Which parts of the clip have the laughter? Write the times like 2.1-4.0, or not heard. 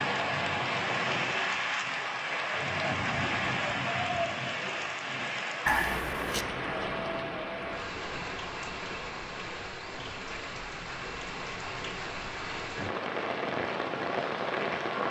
5.7-6.5.